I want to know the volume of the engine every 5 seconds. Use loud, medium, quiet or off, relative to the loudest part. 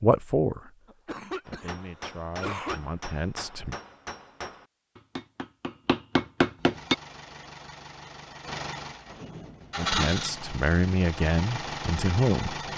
off, loud, loud.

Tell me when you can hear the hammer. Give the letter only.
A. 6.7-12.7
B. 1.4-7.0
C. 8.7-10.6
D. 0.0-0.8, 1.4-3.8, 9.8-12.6
B.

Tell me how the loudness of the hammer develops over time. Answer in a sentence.
The loudness of the hammer goes up.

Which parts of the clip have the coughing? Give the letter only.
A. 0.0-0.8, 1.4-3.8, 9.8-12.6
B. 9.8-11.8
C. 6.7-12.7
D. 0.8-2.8
D.